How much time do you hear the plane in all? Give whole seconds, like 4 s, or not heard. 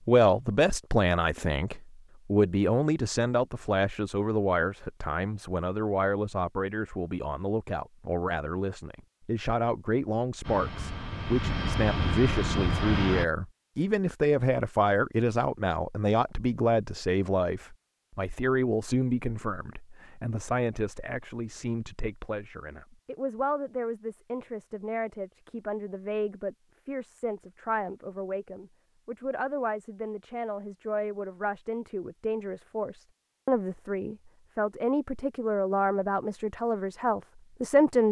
3 s.